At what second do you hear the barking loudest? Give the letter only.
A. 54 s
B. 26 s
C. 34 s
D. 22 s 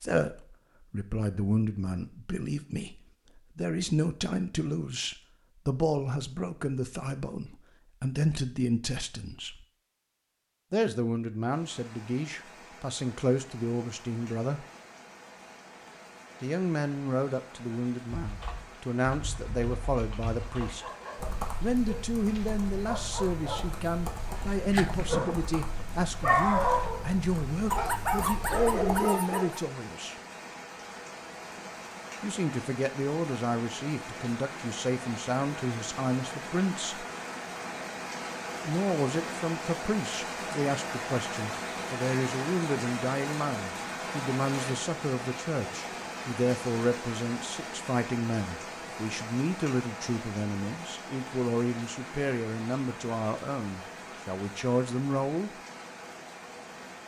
B.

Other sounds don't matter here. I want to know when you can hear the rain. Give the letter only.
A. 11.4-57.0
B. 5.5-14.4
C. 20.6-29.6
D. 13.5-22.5
A.